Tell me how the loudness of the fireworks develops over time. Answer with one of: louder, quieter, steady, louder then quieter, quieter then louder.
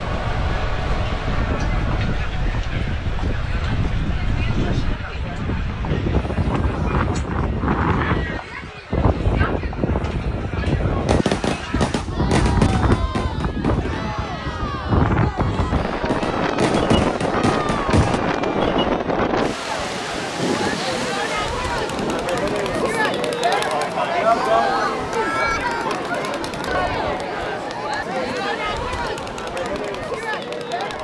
quieter then louder.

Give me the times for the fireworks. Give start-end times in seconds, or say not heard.
11.1-18.2.